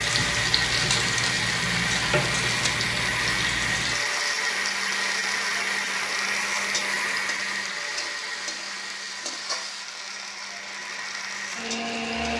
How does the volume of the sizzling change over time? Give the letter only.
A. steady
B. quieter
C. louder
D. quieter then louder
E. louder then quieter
B.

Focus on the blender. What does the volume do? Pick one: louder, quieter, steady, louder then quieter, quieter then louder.
quieter.